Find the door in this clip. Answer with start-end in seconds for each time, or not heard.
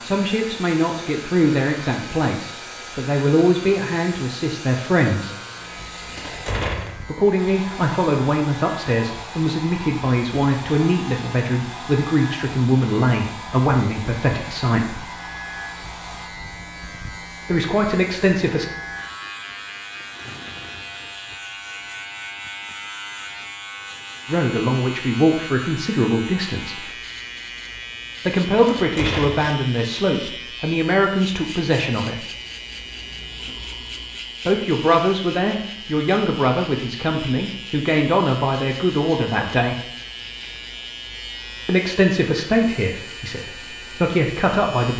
6.2-7.0, 28.6-29.5.